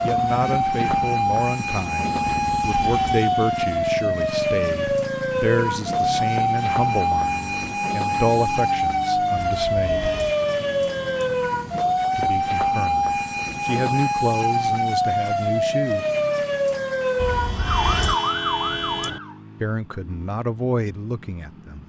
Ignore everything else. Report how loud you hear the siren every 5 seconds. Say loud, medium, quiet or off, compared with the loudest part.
loud, loud, loud, loud, off.